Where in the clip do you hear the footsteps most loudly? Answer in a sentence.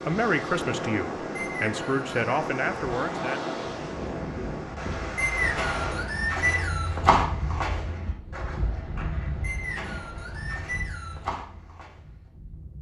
The loudest moment of the footsteps is at 7 seconds.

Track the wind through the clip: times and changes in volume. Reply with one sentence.
You can hear the wind from 0.0 to 12.7 s, getting quieter.